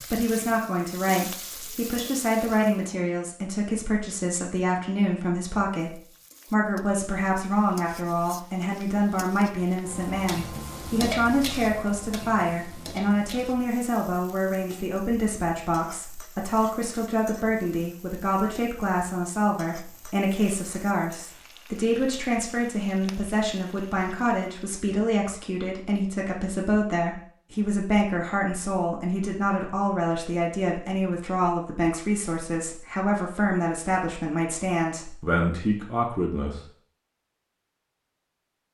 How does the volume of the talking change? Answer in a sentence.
The volume of the talking stays about the same.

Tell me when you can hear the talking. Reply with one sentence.
You can hear the talking from 0.1 to 36.6 s.